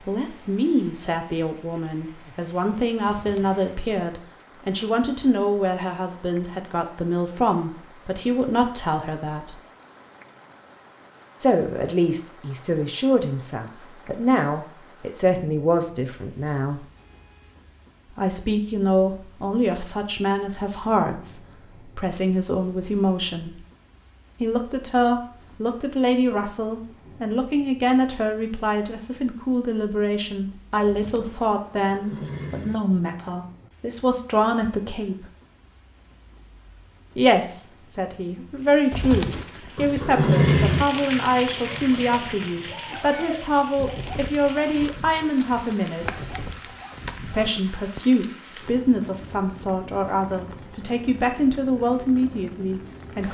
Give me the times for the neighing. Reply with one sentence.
The neighing can be heard from 3.0 to 4.2 s, from 30.9 to 32.8 s and from 38.9 to 40.9 s.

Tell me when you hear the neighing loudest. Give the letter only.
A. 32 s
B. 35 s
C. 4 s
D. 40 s
D.